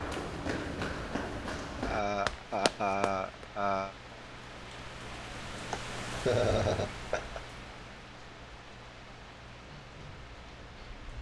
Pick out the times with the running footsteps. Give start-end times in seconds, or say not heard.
0.0-3.5.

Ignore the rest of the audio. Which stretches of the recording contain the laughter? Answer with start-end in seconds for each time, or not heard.
1.9-4.0, 5.7-7.4.